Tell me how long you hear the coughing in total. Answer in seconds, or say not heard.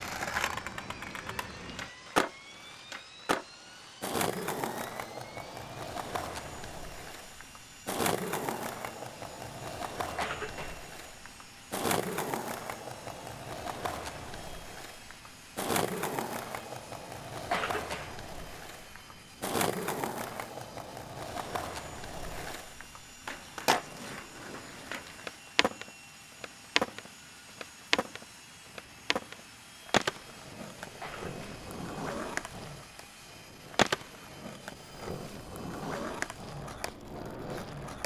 2 s.